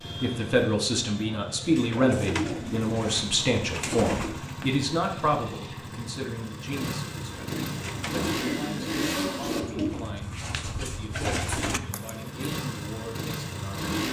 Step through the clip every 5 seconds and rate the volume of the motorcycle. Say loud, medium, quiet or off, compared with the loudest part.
medium, loud, loud.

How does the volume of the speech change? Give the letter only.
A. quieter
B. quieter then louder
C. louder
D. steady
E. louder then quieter
A.